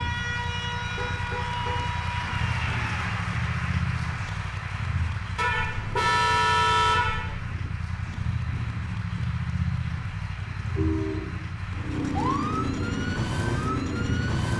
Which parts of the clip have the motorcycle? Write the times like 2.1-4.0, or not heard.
0.0-14.5.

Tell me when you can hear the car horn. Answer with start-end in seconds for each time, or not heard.
0.8-1.9, 5.3-7.4, 10.4-11.4.